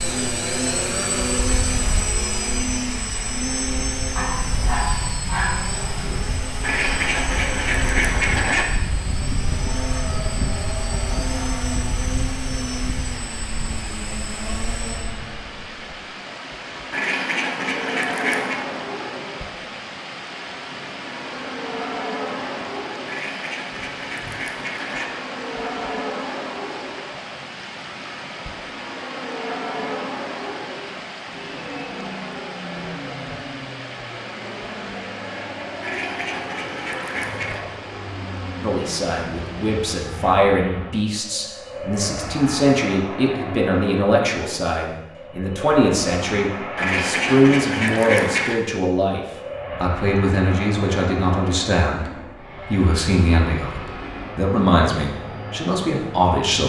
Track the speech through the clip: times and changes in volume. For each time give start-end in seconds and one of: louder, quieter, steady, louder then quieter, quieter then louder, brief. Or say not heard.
38.6-56.6 steady.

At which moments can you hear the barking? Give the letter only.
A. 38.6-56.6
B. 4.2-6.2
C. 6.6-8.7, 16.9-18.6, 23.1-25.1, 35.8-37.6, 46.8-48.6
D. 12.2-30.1
B.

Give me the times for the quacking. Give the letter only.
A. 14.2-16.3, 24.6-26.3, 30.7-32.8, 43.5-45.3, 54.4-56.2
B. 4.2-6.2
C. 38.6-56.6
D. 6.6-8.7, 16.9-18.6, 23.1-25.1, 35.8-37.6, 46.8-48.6
D.